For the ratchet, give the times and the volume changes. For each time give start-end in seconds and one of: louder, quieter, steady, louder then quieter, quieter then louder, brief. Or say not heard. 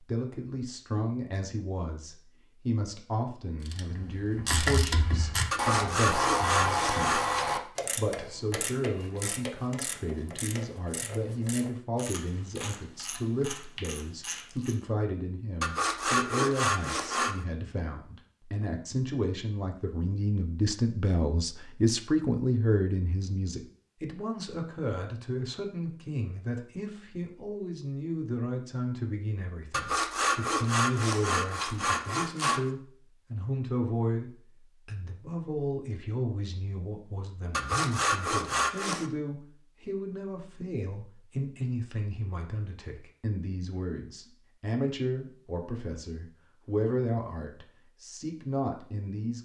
3.6-14.8 quieter.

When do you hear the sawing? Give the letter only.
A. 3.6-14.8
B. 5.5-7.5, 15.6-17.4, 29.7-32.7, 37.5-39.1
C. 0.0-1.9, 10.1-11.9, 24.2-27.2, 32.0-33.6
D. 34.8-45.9
B.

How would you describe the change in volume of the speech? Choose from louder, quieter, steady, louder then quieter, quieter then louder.
steady.